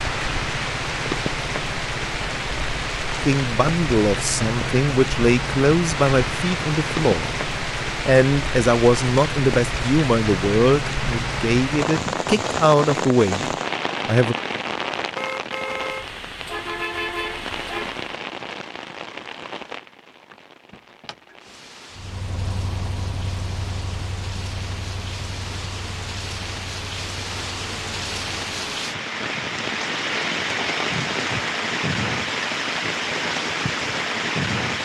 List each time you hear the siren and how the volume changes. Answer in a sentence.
You can't hear the siren here.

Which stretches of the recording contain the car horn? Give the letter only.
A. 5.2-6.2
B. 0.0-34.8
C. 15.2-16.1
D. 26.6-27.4
C.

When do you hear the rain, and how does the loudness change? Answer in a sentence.
You can hear the rain from 0.0 to 34.8 s, getting quieter then louder.